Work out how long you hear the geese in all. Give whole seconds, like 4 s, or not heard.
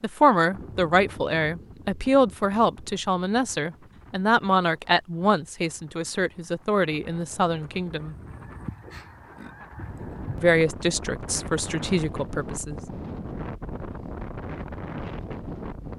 2 s.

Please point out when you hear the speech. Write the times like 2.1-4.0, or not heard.
0.0-8.2, 10.3-12.8.